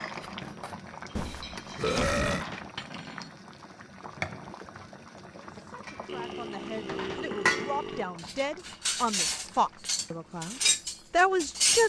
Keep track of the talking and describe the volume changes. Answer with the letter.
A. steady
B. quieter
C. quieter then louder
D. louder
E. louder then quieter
D.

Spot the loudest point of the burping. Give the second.
2 s.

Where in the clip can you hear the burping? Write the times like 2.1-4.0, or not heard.
1.1-2.5, 6.0-8.2.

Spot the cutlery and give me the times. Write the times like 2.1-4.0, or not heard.
0.0-3.4, 6.7-11.8.